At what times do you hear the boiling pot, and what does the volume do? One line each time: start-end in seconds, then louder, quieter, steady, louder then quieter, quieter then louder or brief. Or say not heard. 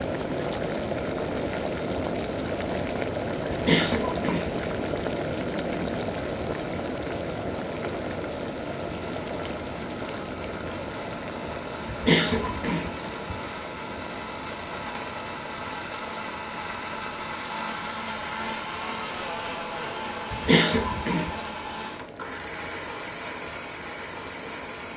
0.0-24.9 quieter.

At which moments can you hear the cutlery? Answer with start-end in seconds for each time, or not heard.
not heard.